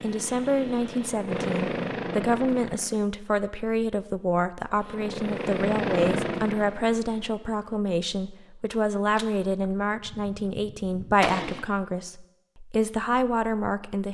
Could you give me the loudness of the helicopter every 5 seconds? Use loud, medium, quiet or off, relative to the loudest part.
loud, loud, off.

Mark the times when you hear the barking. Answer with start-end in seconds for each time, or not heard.
not heard.